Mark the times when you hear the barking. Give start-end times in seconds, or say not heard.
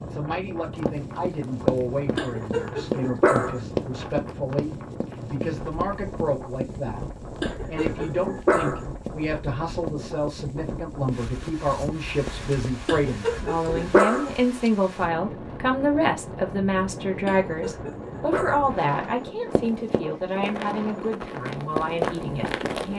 2.1-3.6, 7.4-8.8, 12.8-14.3, 17.2-18.7.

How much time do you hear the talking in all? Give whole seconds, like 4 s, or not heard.
23 s.